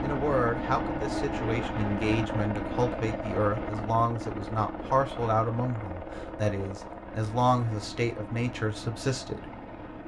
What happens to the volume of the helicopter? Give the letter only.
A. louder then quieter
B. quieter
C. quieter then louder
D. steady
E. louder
B.